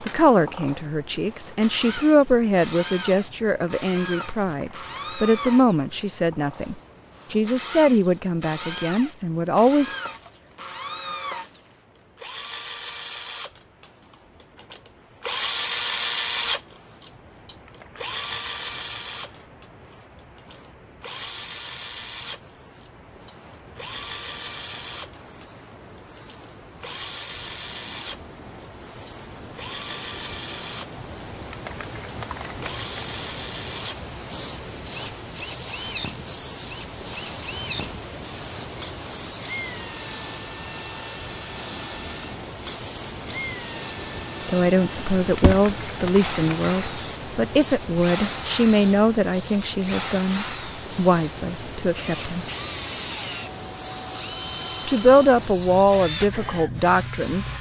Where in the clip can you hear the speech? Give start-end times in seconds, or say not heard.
0.0-9.9, 44.5-52.5, 54.9-57.5.